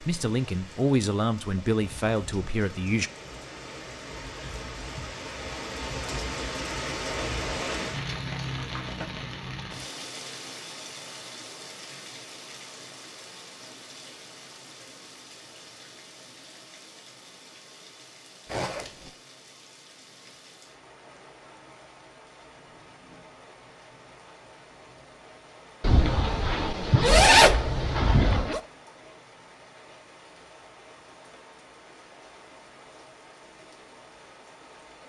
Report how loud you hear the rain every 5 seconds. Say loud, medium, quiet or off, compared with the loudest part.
medium, loud, medium, quiet, quiet, quiet, quiet.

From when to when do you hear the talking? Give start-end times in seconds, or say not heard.
0.0-3.1.